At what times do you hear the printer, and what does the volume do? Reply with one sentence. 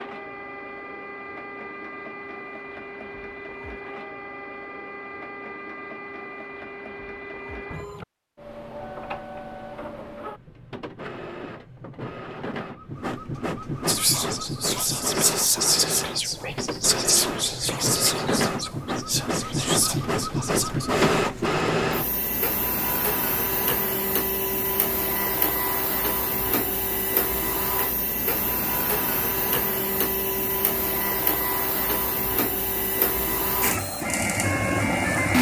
You can hear the printer from 0.0 to 35.3 s, getting louder.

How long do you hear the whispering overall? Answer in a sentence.
You can hear the whispering for 7 seconds altogether.